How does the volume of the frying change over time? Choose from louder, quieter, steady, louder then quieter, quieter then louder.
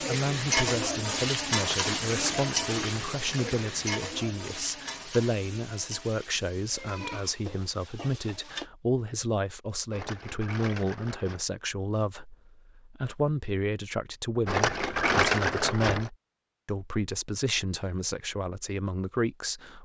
quieter.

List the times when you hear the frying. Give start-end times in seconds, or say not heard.
0.0-8.7.